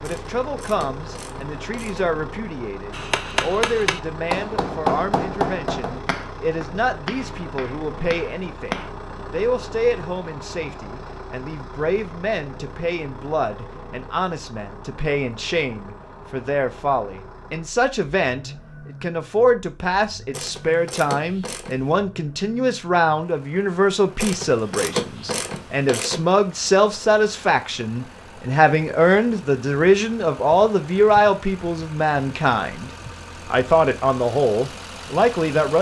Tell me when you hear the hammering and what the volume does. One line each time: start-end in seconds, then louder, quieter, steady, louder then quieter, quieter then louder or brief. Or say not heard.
2.9-8.9 quieter.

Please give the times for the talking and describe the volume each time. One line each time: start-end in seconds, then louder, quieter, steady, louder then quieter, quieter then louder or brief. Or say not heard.
0.0-35.7 louder.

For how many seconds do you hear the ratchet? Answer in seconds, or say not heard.
6 s.